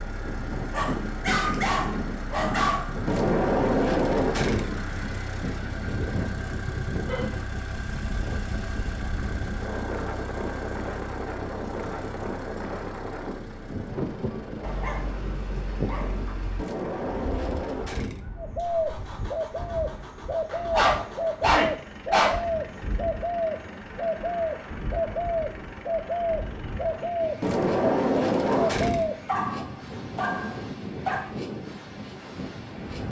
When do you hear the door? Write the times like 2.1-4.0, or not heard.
3.0-4.8, 16.6-18.3, 27.4-29.1.